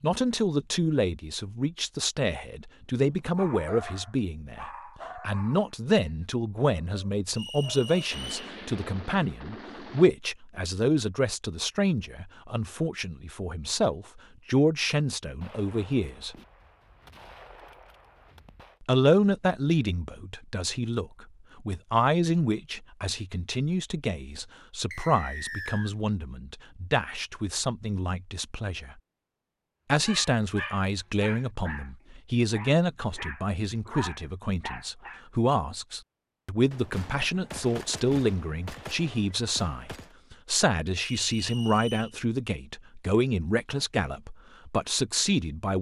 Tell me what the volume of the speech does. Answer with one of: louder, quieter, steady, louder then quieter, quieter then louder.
steady.